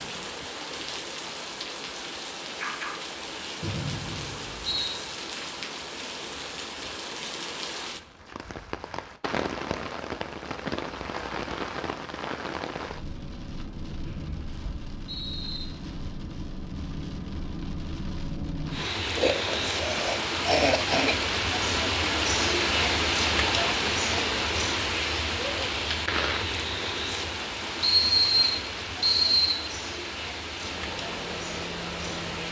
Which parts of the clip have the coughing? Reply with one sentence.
The coughing can be heard from 19.1 to 21.1 s.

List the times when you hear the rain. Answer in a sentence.
The rain can be heard from 0.0 to 32.4 s.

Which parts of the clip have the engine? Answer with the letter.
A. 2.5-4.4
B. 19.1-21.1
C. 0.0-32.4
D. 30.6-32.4
D.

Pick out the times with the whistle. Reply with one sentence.
The whistle can be heard from 3.6 to 5.0 s, from 14.1 to 15.7 s and from 27.8 to 29.6 s.